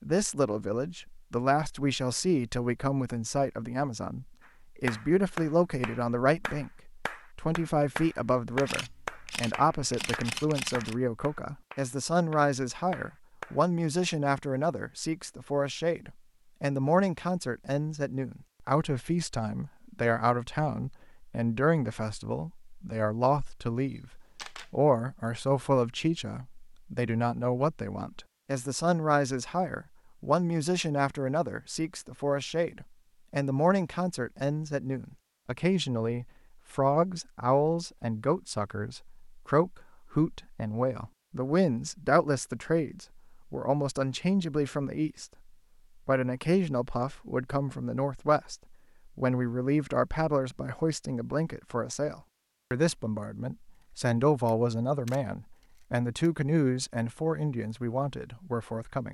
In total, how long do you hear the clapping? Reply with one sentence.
The clapping can be heard for 9 seconds in total.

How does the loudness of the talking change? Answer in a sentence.
The volume of the talking stays about the same.